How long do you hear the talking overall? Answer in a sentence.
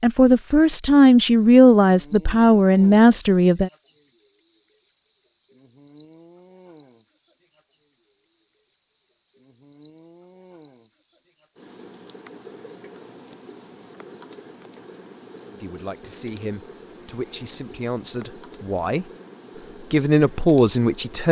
You can hear the talking for 9 seconds altogether.